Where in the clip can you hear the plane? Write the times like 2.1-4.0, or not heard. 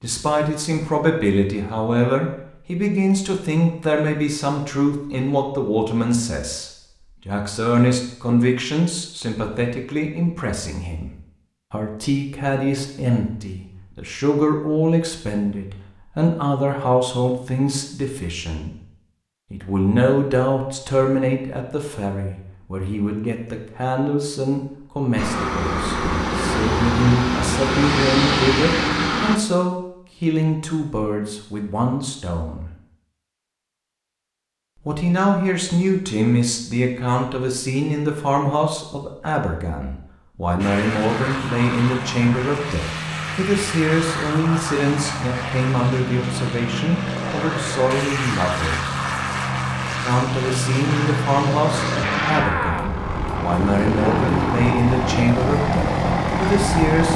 25.1-29.4, 40.5-57.1.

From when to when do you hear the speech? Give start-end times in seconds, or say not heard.
0.0-11.1, 11.7-18.8, 19.5-32.7, 34.9-48.8, 50.0-57.1.